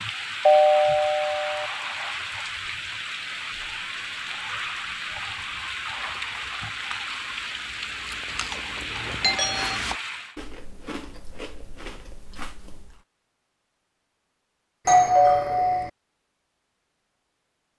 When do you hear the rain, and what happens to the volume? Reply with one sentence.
You can hear the rain from 0.0 to 10.3 s, at a steady volume.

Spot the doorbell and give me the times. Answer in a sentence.
You can hear the doorbell from 0.5 to 1.7 s, from 9.2 to 9.8 s and from 14.8 to 15.9 s.